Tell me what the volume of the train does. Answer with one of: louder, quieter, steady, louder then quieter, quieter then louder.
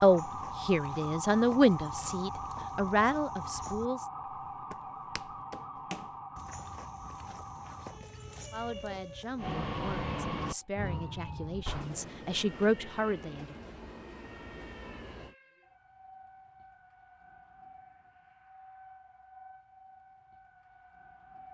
quieter.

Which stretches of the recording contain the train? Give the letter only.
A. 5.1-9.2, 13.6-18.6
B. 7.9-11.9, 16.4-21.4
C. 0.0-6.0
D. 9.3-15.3
D.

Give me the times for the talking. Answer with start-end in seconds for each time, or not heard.
0.0-4.0, 8.5-13.6.